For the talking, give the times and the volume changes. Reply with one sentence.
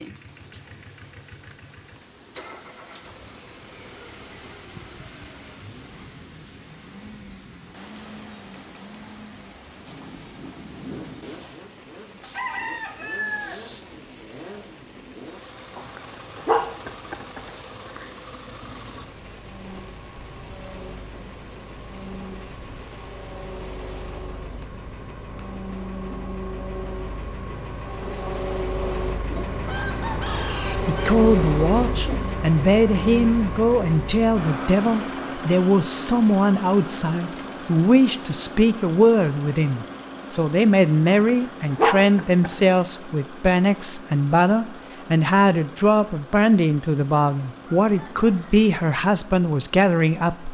You can hear the talking from 30.9 to 50.4 s, at a steady volume.